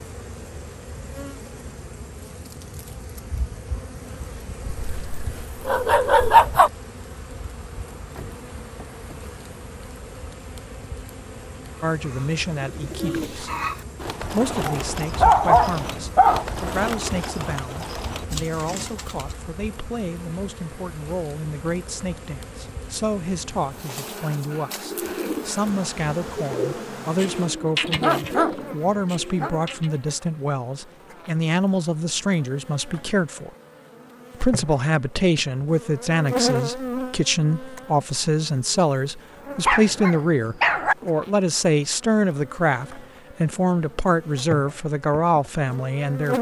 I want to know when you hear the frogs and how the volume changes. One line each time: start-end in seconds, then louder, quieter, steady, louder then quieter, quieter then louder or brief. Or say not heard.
not heard.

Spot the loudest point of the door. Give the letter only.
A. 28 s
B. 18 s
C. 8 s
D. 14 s
C.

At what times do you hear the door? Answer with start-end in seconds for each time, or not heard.
8.0-9.7.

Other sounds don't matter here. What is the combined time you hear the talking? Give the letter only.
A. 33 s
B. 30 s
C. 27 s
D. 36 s
A.